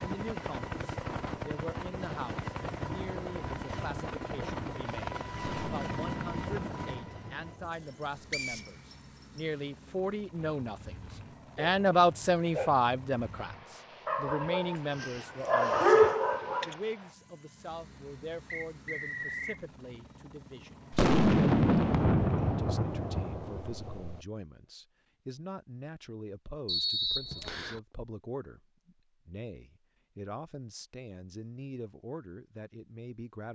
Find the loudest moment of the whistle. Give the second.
27 s.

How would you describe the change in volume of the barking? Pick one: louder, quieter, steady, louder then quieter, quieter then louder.
louder.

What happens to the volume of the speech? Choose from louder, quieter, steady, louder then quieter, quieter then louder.
louder then quieter.